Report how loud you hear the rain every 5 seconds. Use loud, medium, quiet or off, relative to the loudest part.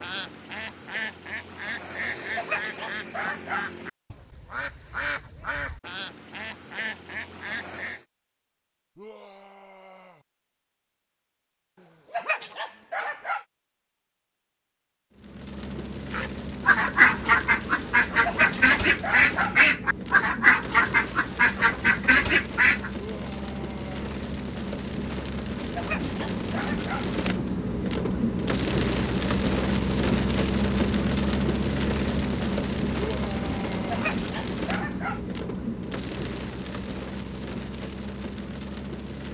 off, off, off, medium, medium, loud, loud, medium.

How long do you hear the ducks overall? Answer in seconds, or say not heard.
15 s.